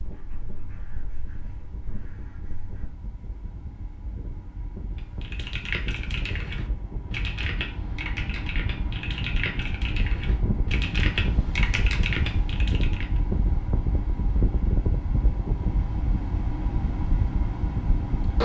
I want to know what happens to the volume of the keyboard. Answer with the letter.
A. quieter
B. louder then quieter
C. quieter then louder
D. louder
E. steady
E.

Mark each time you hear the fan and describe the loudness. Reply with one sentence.
The fan can be heard from 0.0 to 18.4 s, getting louder.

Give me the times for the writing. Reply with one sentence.
You can hear the writing from 0.0 to 2.9 s.